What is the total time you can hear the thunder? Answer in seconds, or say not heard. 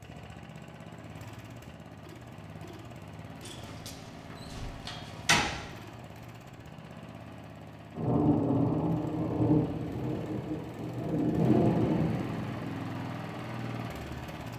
5 s.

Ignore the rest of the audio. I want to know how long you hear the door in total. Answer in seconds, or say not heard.
2 s.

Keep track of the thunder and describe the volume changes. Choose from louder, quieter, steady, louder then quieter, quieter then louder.
quieter then louder.